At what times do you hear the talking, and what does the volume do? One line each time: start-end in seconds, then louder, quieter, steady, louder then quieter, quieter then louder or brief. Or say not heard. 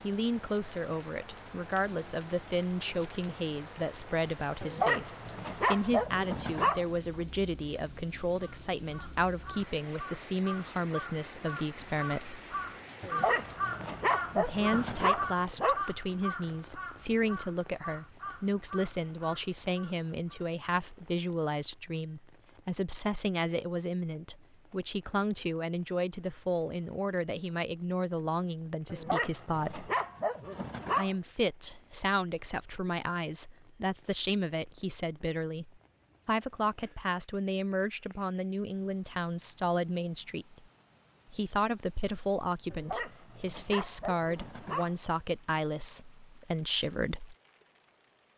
0.0-12.4 steady
14.3-29.9 steady
30.9-40.6 steady
41.3-47.4 steady.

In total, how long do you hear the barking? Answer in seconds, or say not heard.
10 s.